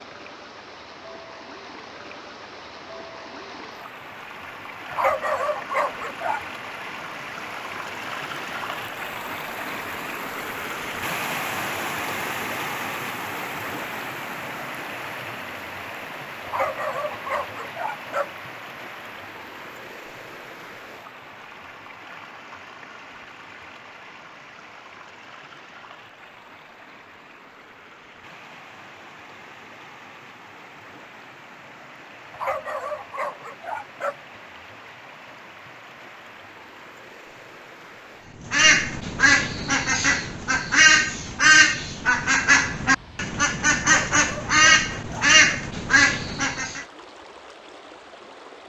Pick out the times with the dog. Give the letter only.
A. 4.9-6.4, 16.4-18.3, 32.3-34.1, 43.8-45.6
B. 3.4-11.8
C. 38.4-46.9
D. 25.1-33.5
A.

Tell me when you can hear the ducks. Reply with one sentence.
The ducks can be heard from 38.4 to 46.9 s.